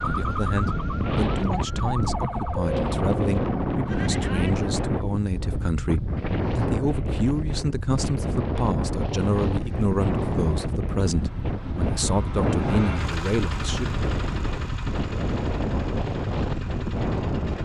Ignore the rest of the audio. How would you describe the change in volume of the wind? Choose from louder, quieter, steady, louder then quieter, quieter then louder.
steady.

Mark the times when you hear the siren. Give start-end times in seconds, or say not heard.
0.0-4.8.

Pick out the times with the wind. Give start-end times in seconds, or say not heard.
0.0-17.6.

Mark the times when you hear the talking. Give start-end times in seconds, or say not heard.
0.0-13.9.